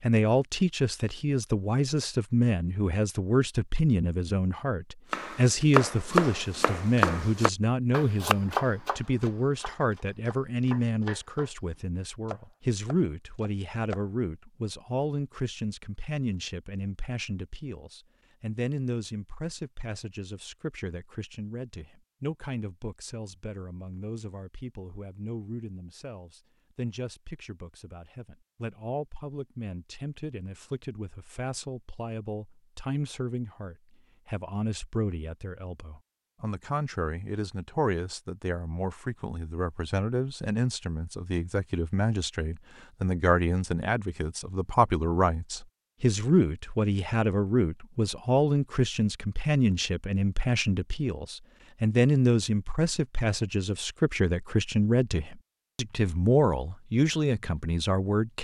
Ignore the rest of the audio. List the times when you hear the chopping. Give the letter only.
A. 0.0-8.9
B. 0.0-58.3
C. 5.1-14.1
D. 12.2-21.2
C.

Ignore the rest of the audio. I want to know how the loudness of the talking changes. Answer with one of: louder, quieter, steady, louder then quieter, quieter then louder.
quieter then louder.